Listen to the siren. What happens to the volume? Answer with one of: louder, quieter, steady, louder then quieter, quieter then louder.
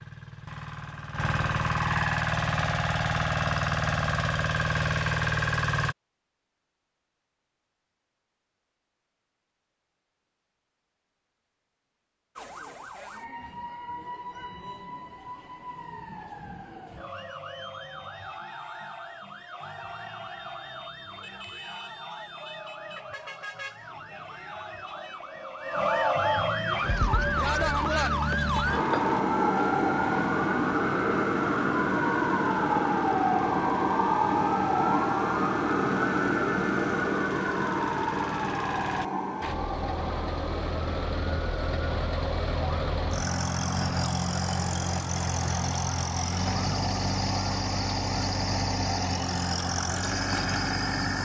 louder then quieter.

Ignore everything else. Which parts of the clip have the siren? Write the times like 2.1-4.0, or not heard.
12.3-51.2.